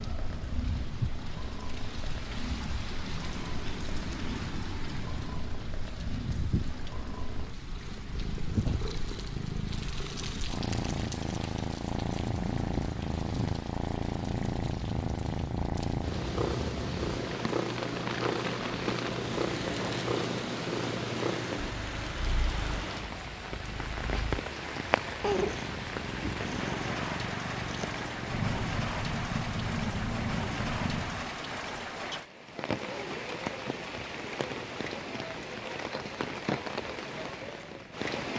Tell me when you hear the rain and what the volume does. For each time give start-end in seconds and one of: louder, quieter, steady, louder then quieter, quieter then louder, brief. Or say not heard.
0.0-38.3 steady.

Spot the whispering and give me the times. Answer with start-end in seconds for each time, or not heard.
not heard.